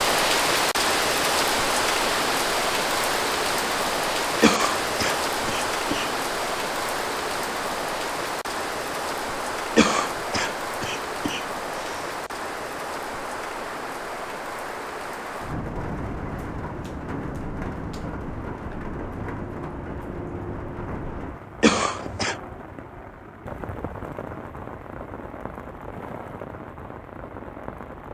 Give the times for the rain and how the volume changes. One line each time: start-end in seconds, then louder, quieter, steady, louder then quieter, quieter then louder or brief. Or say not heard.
0.0-28.0 quieter.